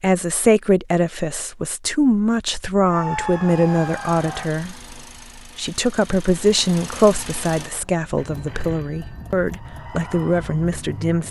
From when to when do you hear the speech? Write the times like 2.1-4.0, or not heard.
0.0-4.8, 5.5-11.2.